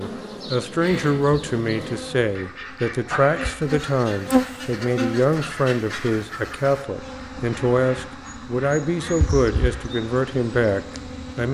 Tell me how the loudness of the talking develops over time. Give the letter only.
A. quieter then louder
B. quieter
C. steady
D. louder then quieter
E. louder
C.